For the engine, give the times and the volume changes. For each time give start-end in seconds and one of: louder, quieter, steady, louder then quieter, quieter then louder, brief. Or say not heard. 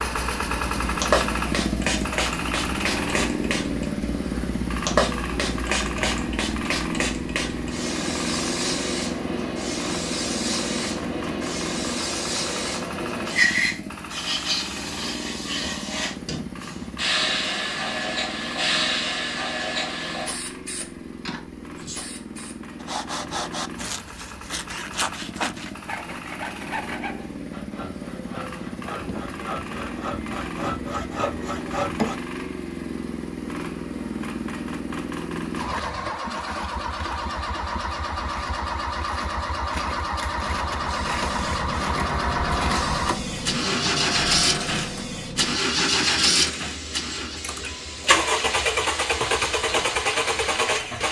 0.0-51.0 quieter then louder.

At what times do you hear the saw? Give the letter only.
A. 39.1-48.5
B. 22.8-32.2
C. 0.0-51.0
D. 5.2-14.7
B.